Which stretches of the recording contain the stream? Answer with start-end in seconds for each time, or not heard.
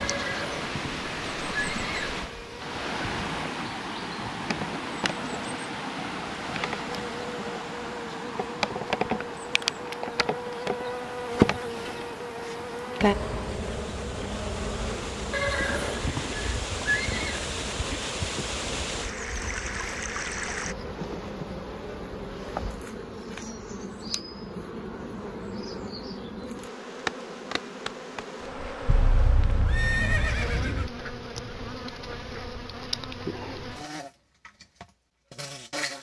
0.0-20.8.